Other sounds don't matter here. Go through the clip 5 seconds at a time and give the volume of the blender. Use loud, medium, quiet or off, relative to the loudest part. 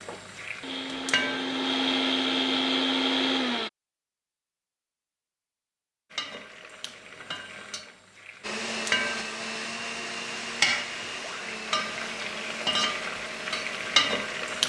loud, medium, medium.